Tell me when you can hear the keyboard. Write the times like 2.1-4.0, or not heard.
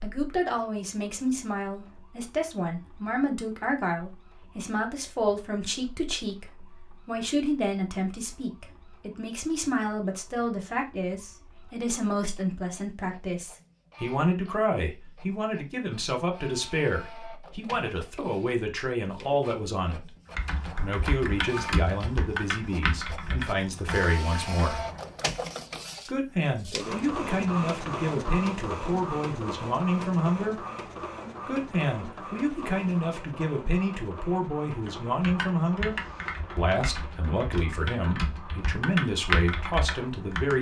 20.3-25.2, 34.8-40.5.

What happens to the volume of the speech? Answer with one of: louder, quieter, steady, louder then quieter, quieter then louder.
steady.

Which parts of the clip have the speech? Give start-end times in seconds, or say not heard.
0.0-20.0, 20.8-24.8, 26.1-30.6, 31.4-36.0, 36.5-40.5.